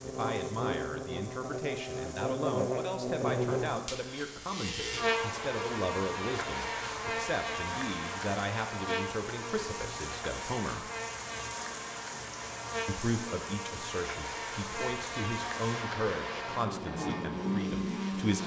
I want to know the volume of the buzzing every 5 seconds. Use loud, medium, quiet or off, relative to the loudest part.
loud, loud, medium, loud.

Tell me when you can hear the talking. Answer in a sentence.
The talking can be heard from 0.0 to 10.9 s and from 12.8 to 18.4 s.